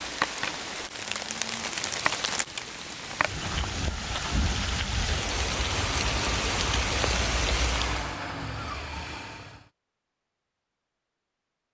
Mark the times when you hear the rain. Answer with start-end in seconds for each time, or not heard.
0.0-8.2.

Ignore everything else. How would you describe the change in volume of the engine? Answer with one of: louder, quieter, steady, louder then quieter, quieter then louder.
steady.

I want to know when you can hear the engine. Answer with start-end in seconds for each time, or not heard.
5.5-9.7.